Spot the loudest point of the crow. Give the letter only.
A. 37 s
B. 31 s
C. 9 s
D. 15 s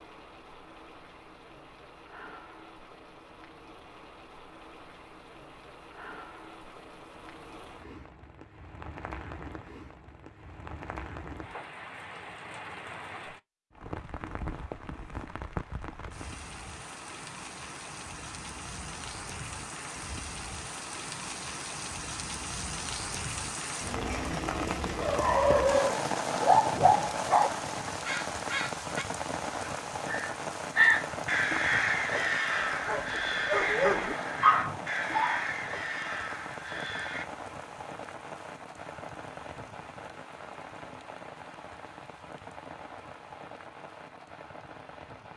B.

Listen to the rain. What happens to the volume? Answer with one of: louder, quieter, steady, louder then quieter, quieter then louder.
louder then quieter.